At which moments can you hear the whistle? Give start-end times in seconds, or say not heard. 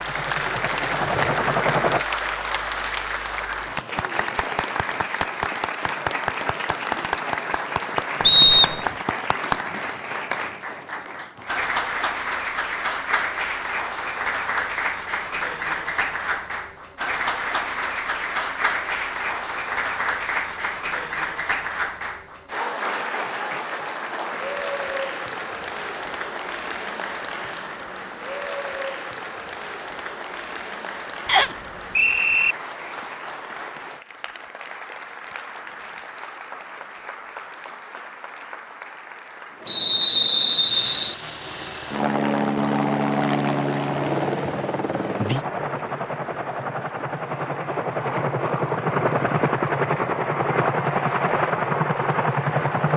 8.2-8.8, 31.2-32.5, 39.6-41.1.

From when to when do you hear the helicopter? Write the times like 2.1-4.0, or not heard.
0.0-2.0, 40.6-52.9.